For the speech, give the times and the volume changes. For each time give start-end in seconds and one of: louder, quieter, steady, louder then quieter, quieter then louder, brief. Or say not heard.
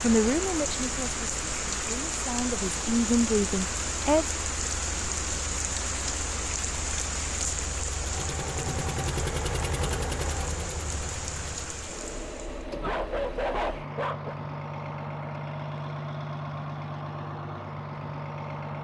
0.0-4.4 quieter then louder.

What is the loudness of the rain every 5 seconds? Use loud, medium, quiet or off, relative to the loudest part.
loud, loud, medium, off.